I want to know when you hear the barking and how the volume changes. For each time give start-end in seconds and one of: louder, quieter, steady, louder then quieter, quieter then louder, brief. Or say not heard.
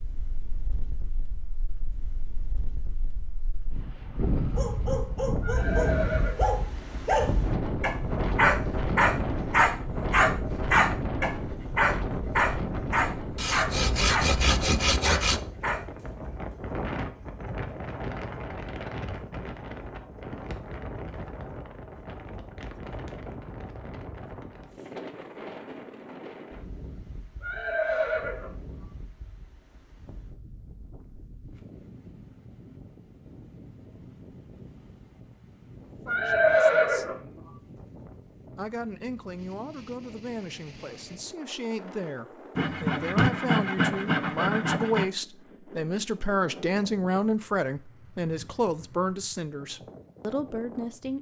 4.5-15.8 louder then quieter.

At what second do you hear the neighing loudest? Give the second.
37 s.